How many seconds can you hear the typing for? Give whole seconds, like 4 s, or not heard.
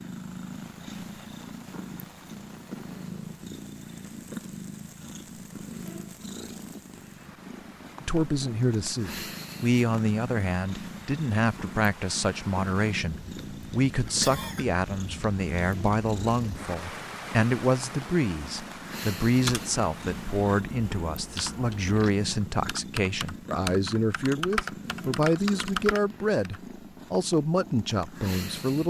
7 s.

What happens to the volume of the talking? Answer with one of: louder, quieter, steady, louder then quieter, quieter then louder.
steady.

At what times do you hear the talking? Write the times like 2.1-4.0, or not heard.
8.0-28.8.